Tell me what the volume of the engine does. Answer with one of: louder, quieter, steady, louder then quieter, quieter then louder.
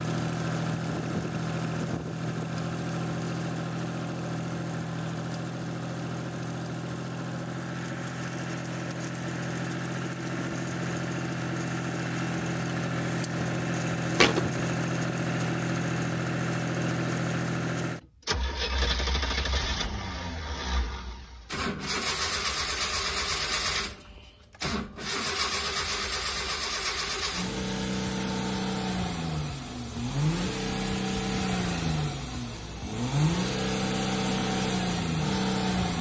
steady.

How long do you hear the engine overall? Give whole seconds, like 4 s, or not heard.
36 s.